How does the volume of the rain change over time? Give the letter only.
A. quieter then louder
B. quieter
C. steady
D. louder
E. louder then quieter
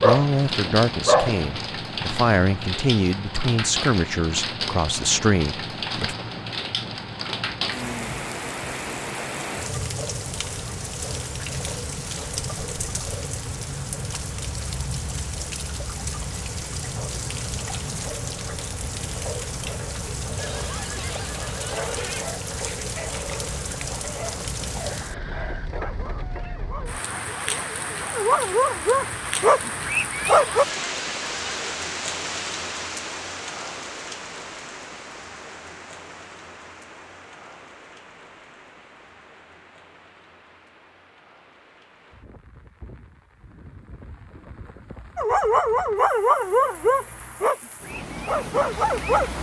B.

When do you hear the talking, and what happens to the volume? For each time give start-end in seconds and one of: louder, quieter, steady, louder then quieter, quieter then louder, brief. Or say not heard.
0.0-6.2 steady.